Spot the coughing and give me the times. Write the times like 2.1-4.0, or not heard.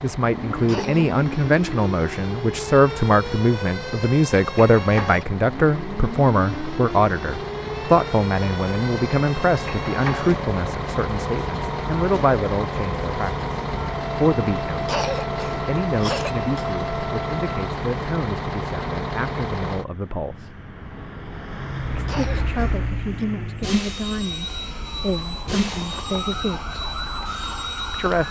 0.7-1.1, 14.8-16.6, 22.1-23.2.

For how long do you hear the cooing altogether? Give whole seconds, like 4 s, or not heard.
not heard.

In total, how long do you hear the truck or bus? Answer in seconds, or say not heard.
28 s.